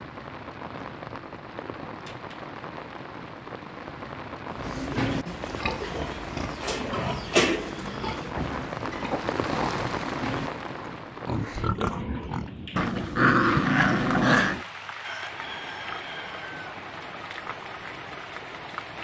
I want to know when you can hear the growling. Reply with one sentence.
The growling can be heard from 1.9 to 2.5 s, from 8.3 to 9.2 s and from 12.8 to 14.7 s.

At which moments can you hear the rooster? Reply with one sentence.
You can hear the rooster from 15.0 to 16.6 s.